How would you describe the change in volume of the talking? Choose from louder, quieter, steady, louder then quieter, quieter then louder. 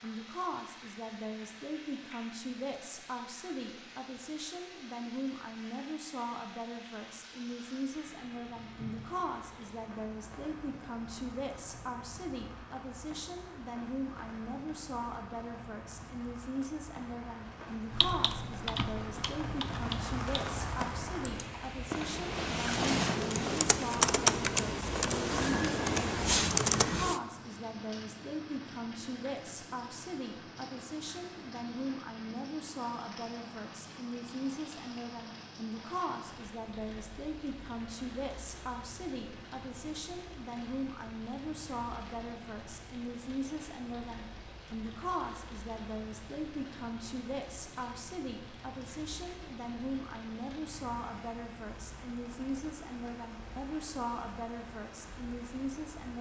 steady.